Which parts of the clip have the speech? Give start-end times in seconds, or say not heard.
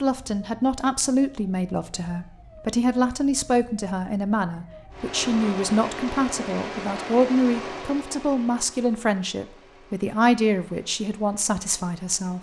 0.0-12.3.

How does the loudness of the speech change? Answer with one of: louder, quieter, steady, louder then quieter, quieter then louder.
steady.